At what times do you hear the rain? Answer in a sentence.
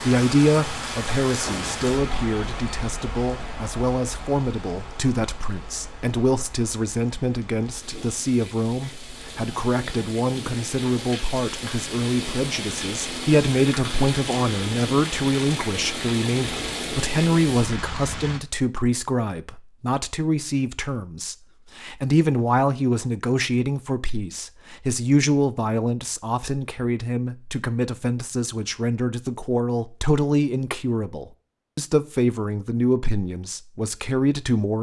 You can hear the rain from 0.0 to 18.4 s.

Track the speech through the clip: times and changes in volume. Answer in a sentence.
The speech can be heard from 0.0 to 34.7 s, at a steady volume.